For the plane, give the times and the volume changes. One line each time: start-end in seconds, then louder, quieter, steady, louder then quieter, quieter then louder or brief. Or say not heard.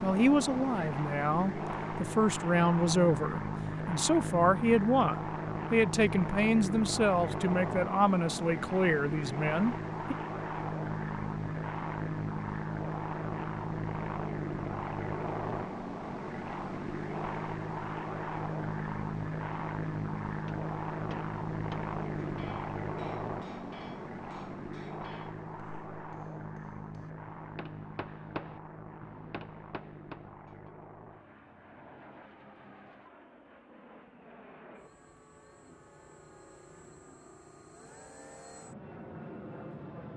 0.0-40.1 quieter.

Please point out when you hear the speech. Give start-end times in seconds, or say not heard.
0.0-10.2.